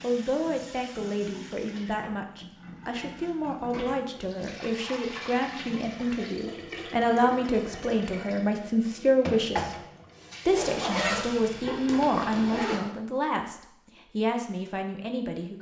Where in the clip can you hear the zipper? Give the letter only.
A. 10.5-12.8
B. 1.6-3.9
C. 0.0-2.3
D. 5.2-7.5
A.